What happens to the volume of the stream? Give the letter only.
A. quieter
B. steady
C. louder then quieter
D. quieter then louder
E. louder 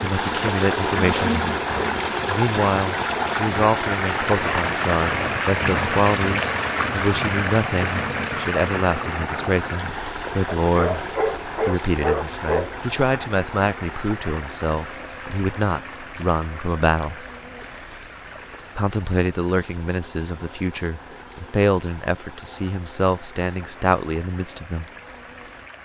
A.